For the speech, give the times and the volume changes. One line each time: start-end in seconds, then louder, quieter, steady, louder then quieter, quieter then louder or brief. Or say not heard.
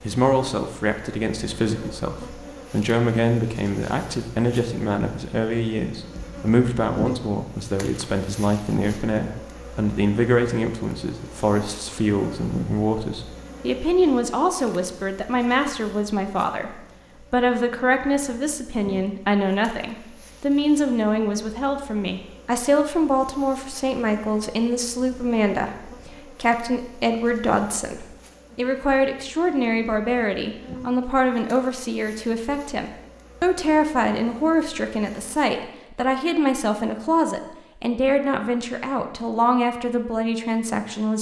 0.0-41.1 steady.